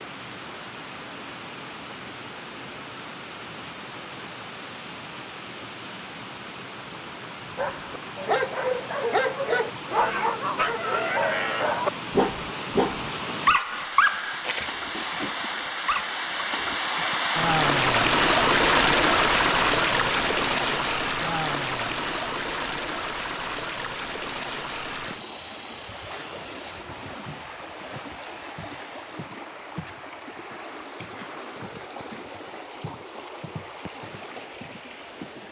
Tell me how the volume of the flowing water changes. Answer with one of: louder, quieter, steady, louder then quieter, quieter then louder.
louder then quieter.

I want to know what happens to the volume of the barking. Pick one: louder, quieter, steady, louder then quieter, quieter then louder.
quieter.